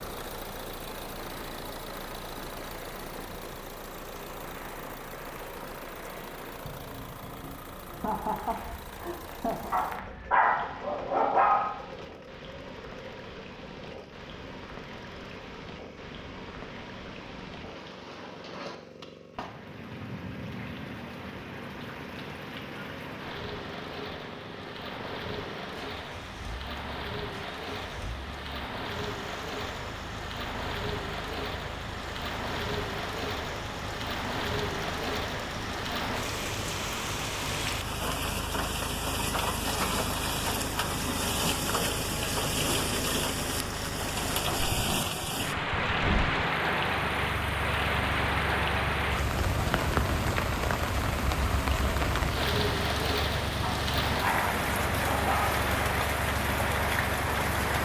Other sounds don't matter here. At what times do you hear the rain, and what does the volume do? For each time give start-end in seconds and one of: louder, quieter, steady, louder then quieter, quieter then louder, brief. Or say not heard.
0.0-57.8 louder.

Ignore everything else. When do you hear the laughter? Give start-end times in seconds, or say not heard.
7.9-9.8.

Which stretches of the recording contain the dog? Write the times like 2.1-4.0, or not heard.
9.7-11.7, 53.6-55.6.